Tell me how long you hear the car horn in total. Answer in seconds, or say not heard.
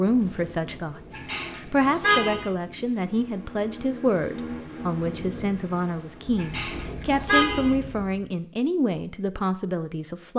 3 s.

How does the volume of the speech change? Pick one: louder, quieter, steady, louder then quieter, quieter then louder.
steady.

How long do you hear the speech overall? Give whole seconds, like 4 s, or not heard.
10 s.